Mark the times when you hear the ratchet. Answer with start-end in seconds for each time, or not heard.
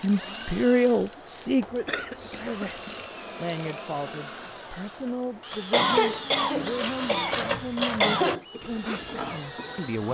0.0-1.8, 2.7-9.9.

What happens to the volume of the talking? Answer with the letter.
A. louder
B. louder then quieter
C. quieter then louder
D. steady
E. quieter
E.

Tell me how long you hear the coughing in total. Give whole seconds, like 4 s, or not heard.
4 s.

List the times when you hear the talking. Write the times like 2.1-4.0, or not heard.
0.0-10.0.